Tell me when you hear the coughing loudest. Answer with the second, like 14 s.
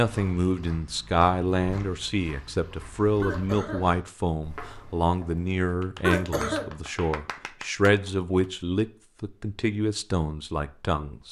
6 s.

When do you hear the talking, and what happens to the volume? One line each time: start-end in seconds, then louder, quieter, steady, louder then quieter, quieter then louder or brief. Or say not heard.
0.0-11.2 steady.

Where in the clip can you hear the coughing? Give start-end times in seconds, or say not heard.
3.2-4.0, 6.0-6.7.